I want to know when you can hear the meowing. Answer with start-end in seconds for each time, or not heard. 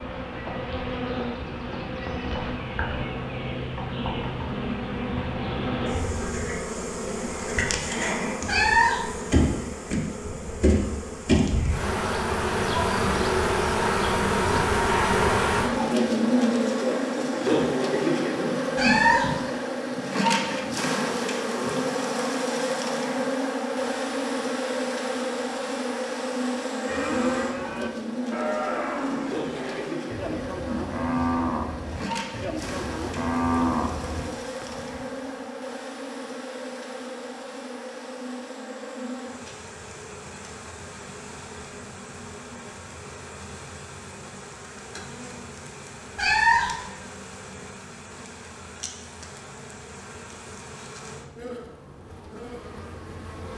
8.4-9.1, 18.8-19.4, 46.1-46.8.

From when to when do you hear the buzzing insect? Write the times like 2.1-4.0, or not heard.
0.0-53.5.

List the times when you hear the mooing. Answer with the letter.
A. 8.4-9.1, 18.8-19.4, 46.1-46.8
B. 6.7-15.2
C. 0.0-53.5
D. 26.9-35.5
D.